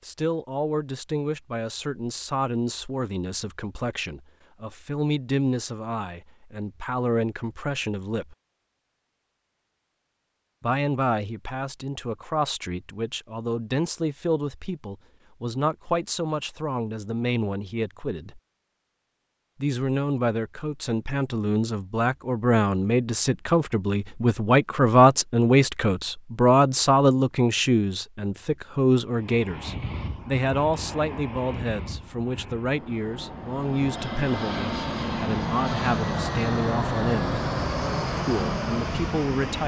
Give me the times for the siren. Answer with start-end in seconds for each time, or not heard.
not heard.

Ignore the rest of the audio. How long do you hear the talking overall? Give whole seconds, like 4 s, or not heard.
35 s.